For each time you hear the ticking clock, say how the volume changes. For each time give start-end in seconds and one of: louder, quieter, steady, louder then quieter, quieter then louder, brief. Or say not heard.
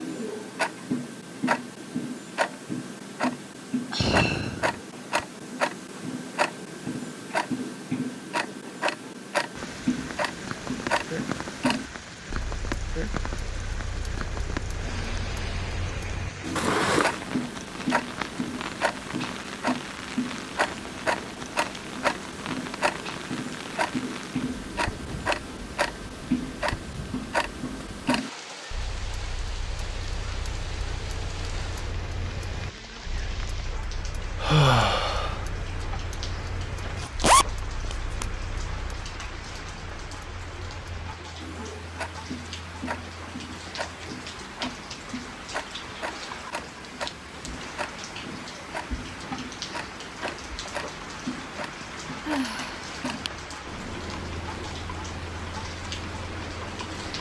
0.0-57.1 quieter.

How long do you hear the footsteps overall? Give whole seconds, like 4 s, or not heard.
not heard.